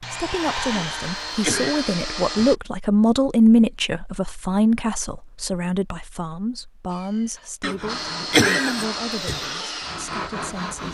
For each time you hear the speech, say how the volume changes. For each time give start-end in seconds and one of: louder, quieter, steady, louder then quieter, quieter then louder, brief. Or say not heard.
0.0-10.9 louder then quieter.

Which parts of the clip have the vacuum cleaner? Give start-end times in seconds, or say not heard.
0.0-2.5, 7.8-10.9.